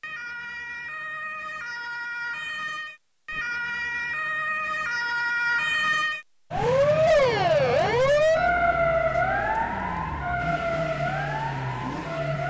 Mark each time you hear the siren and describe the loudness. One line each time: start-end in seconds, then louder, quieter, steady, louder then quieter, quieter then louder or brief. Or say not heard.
0.0-12.4 louder then quieter.